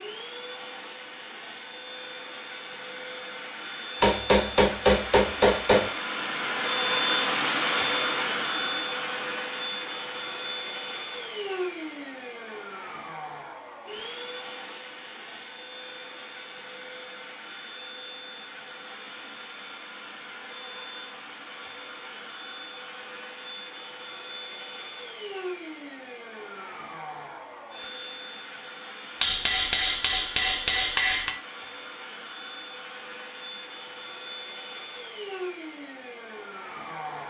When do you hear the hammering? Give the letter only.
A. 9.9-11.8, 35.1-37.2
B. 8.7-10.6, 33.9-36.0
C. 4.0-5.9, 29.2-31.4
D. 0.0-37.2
C.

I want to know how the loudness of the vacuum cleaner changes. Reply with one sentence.
The volume of the vacuum cleaner goes down.